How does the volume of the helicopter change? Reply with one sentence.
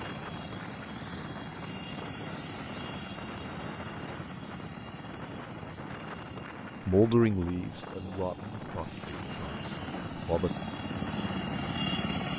The loudness of the helicopter goes down, then up.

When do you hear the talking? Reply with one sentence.
The talking can be heard from 6.8 to 10.5 s.